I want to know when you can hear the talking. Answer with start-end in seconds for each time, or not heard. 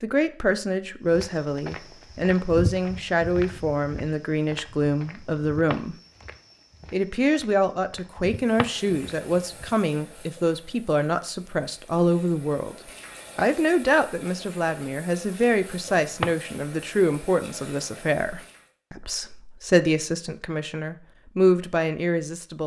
0.0-6.0, 6.9-12.8, 13.3-22.6.